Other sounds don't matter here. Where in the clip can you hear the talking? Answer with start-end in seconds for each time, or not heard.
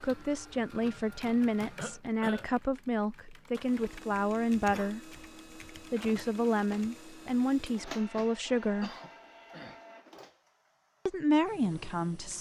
0.0-5.2, 5.9-8.9, 11.1-12.3.